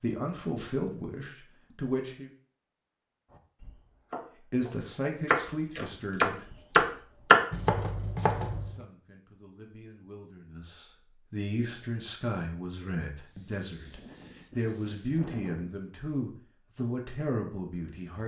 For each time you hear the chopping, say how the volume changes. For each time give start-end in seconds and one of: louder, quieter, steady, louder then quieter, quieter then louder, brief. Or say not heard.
3.6-8.8 louder then quieter.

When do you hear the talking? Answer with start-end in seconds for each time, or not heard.
0.0-2.3, 4.4-6.5, 8.5-18.2.